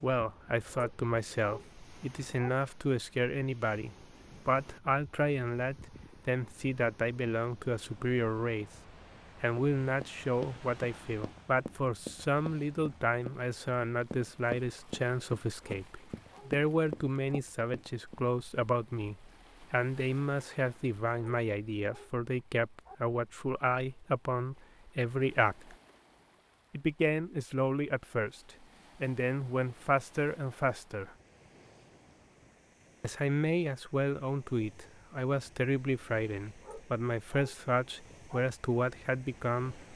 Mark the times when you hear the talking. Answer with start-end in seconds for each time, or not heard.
0.0-8.7, 9.4-25.8, 26.7-31.1, 33.0-39.9.